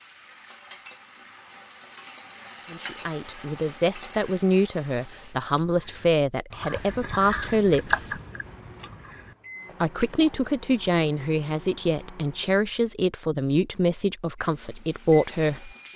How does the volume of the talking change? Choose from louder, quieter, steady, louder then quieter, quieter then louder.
steady.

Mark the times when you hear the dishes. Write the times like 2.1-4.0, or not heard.
not heard.